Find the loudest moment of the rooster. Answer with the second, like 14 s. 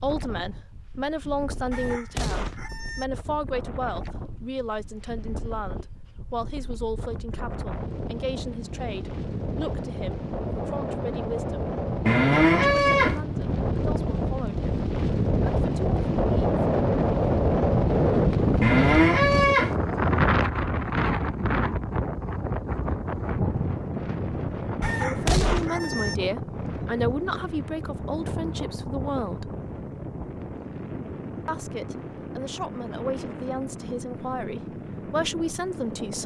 25 s.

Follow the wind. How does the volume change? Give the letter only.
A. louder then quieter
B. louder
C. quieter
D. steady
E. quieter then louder
A.